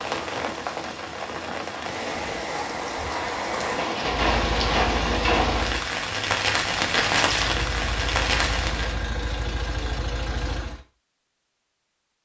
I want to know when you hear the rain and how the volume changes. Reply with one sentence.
You can hear the rain from 0.0 to 9.0 s, getting louder.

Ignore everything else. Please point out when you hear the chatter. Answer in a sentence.
The chatter can't be heard in this clip.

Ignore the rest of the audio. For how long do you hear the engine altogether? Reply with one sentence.
The engine can be heard for 5 seconds in total.